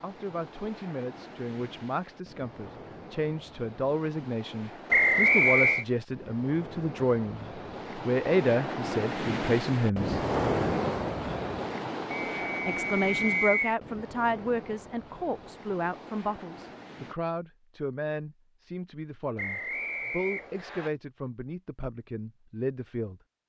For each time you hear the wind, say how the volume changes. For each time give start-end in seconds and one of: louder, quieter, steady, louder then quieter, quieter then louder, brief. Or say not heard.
0.0-17.1 louder then quieter.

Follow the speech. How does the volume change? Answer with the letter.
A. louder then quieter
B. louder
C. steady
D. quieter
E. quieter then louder
A.